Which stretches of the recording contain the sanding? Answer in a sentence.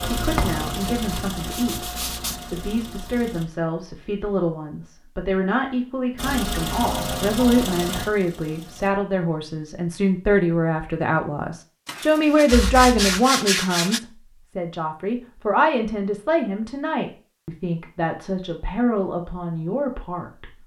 You can hear the sanding from 0.8 to 2.5 s and from 11.8 to 14.0 s.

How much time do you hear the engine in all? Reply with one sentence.
You can hear the engine for 6 seconds altogether.